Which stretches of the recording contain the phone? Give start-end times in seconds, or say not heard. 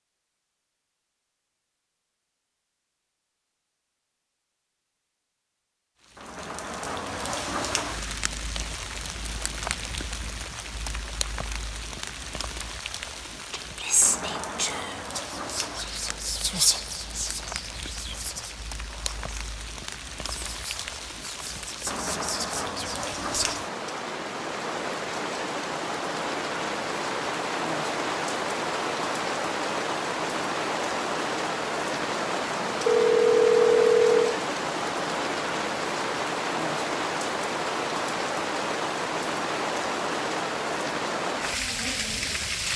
32.9-34.4.